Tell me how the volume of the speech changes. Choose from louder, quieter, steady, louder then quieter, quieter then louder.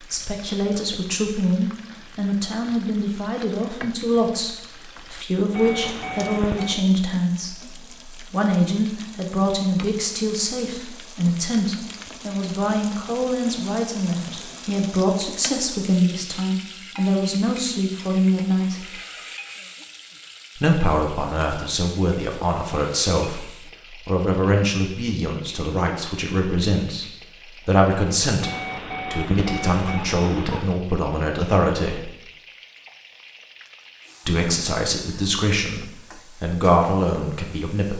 steady.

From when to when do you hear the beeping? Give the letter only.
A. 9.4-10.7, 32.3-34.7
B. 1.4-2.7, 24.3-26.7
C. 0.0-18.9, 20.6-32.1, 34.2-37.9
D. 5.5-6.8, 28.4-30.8
D.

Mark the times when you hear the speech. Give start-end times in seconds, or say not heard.
0.0-18.9, 20.6-32.1, 34.2-37.9.